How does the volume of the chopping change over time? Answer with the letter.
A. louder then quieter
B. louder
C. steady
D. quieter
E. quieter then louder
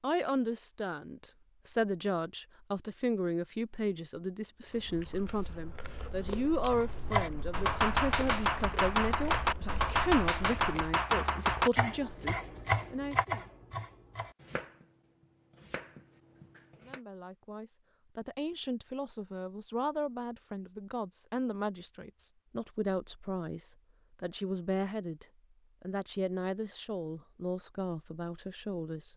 D.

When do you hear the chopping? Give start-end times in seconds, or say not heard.
6.7-17.0.